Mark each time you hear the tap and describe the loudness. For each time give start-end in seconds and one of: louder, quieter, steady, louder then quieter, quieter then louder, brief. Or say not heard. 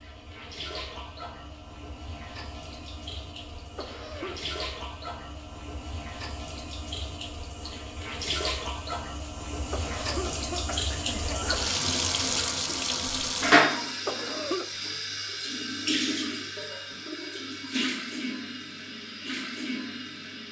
0.0-20.4 louder then quieter.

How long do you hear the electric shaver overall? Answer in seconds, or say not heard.
not heard.